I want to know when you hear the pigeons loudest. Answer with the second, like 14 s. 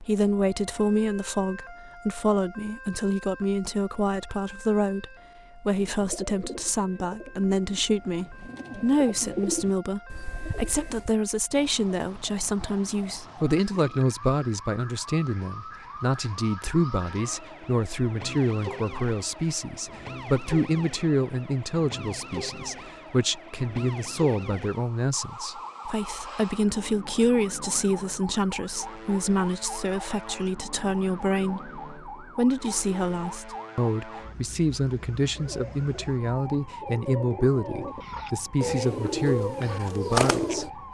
40 s.